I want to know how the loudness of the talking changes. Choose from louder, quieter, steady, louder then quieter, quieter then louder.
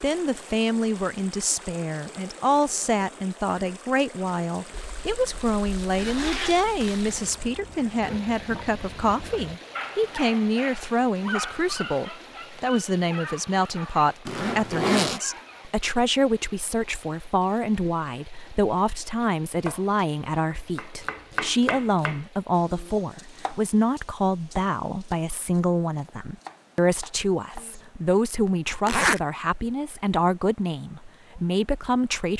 steady.